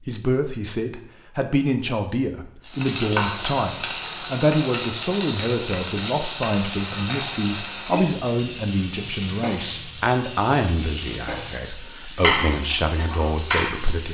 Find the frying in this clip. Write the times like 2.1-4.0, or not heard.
2.6-14.0.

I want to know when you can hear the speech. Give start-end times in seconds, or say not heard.
0.1-14.0.